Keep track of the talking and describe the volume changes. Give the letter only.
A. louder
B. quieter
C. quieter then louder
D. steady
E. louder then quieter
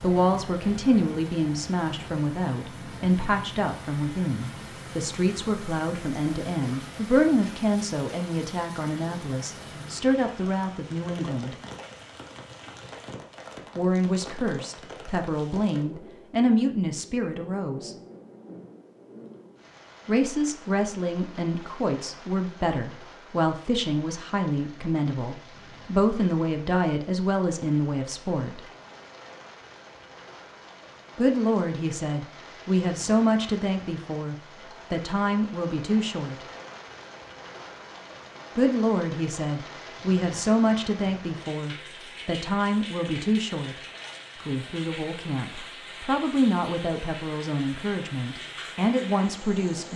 D.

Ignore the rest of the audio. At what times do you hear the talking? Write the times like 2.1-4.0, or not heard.
0.0-11.6, 13.8-17.9, 20.1-28.6, 31.1-36.5, 38.5-49.9.